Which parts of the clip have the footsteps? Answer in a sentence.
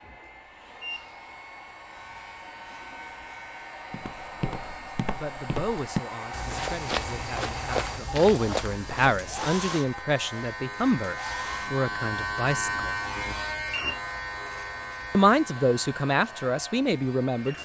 You can hear the footsteps from 3.9 to 9.9 s.